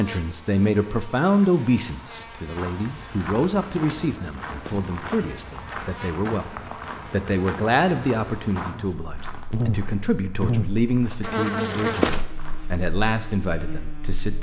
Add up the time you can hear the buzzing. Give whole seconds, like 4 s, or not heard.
14 s.